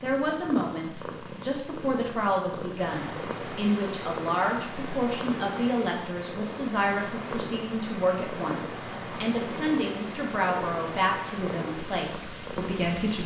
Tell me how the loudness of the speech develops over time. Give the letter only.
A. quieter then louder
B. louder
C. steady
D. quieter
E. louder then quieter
C.